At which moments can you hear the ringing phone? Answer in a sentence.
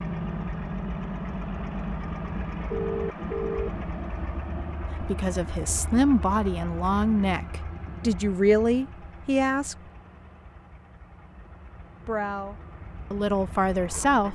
You can hear the ringing phone from 2.7 to 3.8 s.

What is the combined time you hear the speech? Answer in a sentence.
You can hear the speech for 7 seconds altogether.